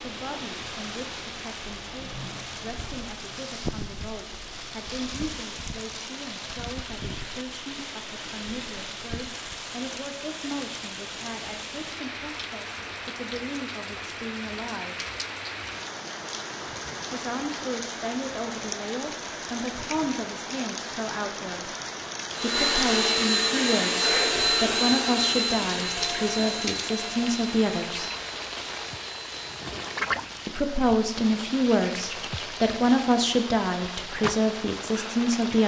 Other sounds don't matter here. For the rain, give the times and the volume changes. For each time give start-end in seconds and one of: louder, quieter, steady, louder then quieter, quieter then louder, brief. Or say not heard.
0.0-35.6 steady.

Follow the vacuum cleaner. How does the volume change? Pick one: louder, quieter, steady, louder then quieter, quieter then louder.
quieter.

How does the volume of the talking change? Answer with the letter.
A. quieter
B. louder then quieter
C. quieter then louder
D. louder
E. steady
D.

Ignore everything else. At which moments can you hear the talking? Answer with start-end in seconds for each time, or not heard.
0.0-15.0, 17.1-21.7, 22.4-28.1, 30.4-35.6.